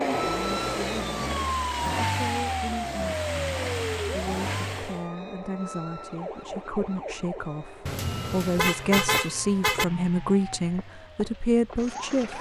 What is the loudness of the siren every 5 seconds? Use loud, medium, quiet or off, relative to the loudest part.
loud, medium, quiet.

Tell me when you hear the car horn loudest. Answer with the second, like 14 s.
9 s.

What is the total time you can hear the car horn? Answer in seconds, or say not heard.
2 s.